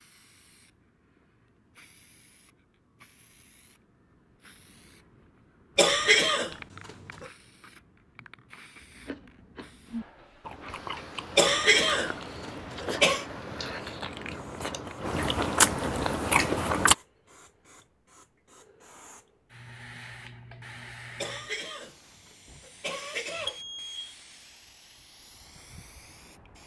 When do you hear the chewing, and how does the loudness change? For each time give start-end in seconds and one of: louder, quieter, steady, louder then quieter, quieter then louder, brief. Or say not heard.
8.8-16.9 louder.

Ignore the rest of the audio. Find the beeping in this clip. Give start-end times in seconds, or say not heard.
23.4-24.1.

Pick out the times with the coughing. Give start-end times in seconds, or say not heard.
5.8-7.2, 11.3-13.2, 21.1-23.6.